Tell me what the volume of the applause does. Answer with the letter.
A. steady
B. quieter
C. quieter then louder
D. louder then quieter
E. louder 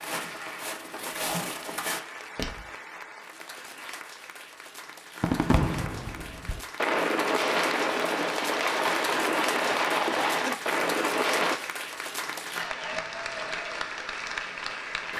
E.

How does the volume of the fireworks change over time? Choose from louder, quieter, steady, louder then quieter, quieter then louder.
louder.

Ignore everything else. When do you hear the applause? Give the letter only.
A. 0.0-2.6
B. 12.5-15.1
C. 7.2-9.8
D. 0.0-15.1
D.